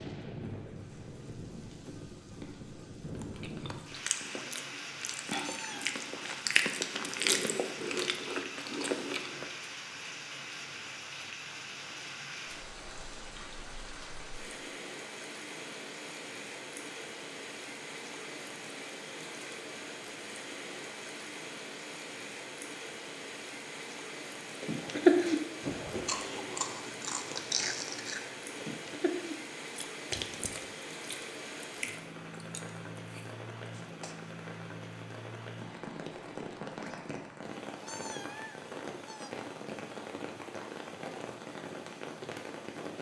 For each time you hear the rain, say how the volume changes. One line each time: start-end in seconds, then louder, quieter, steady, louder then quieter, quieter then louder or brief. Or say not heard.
0.0-42.9 steady.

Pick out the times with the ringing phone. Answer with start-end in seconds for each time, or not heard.
not heard.